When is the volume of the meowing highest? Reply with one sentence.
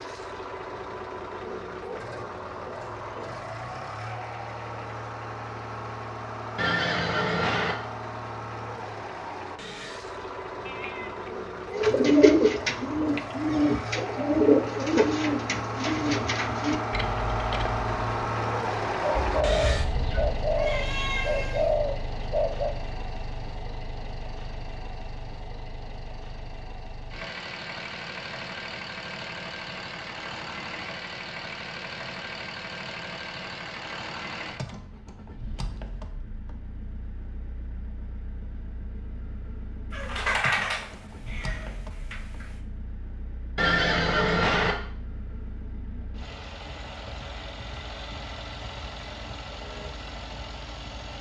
The loudest moment of the meowing is at 40 seconds.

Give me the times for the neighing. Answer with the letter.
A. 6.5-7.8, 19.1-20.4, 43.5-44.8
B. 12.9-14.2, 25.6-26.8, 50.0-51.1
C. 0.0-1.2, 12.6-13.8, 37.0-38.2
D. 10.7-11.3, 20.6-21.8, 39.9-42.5
A.